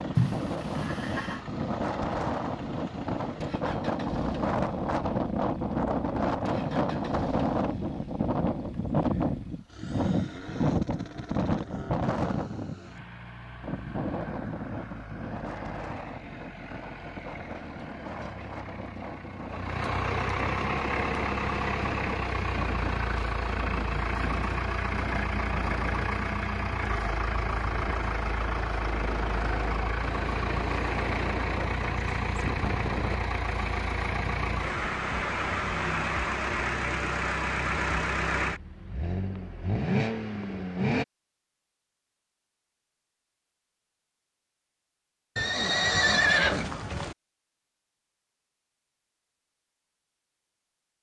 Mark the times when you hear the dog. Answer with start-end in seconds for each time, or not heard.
not heard.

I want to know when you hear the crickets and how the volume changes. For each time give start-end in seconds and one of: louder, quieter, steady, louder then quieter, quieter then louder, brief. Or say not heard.
not heard.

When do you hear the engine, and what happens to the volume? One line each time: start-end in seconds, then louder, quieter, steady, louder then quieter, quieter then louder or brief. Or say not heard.
0.0-41.0 louder.